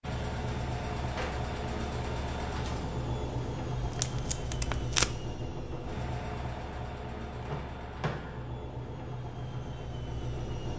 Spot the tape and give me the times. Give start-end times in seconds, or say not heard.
3.8-5.1.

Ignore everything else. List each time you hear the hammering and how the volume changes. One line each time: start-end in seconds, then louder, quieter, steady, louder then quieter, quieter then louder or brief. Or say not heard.
not heard.